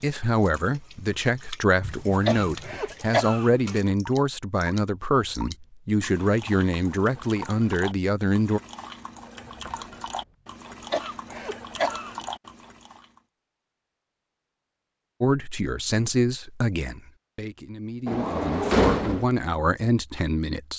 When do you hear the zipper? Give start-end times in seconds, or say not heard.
not heard.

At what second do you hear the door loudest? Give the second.
19 s.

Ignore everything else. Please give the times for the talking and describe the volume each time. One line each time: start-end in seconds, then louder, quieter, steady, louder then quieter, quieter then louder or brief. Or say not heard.
0.0-8.6 steady
15.2-20.7 quieter then louder.